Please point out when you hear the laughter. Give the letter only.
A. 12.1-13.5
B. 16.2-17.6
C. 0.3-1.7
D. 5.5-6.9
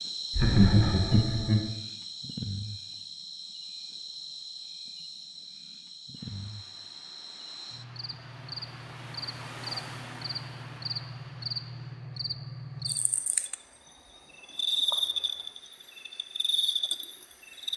C.